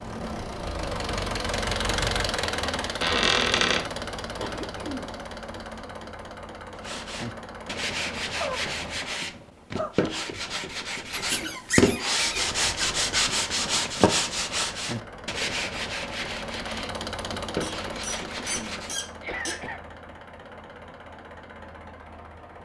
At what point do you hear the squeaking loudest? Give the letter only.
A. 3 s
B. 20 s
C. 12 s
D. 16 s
A.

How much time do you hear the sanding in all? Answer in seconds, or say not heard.
12 s.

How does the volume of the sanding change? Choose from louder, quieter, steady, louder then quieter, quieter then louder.
louder then quieter.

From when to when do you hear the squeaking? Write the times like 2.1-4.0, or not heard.
3.0-3.9, 11.2-12.9, 17.6-19.6.